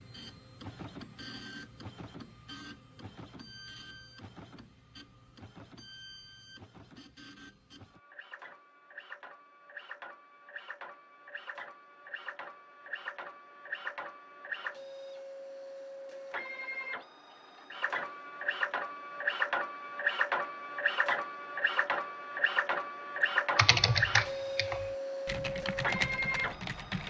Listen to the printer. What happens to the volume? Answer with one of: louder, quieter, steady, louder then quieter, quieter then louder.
louder.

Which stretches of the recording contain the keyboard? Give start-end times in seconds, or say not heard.
23.6-27.0.